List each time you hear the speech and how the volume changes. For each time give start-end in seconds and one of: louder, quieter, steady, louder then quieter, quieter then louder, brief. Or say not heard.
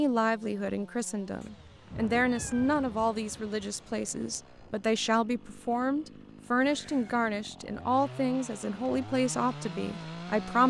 0.0-10.6 steady.